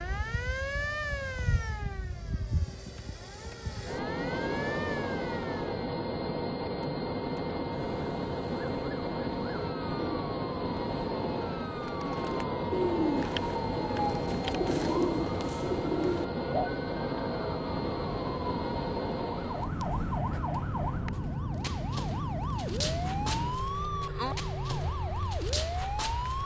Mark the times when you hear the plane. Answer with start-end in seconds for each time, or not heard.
0.0-26.4.